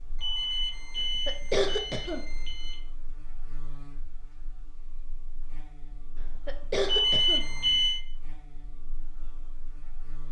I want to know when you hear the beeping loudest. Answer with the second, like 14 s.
7 s.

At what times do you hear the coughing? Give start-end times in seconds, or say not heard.
0.9-2.5, 6.2-7.7.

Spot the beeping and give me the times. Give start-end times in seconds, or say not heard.
0.2-2.8, 6.8-8.0.